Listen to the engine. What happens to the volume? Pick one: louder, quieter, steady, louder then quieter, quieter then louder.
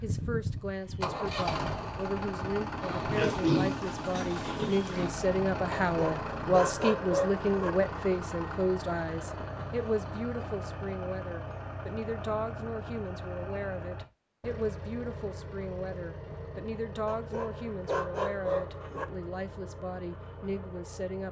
quieter.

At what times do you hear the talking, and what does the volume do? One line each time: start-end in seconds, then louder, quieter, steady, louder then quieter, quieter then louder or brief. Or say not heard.
0.0-21.2 louder then quieter.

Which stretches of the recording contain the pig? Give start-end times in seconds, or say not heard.
3.1-5.2.